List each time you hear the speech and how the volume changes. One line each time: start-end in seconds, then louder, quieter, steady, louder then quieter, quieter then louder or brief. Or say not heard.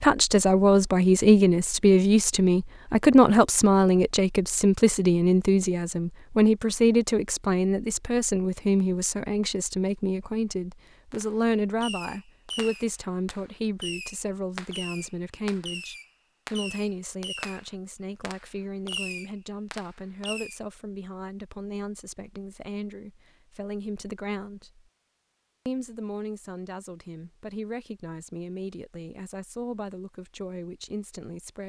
0.0-24.9 quieter
25.6-31.6 steady.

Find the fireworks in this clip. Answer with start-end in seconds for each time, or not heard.
11.1-20.6.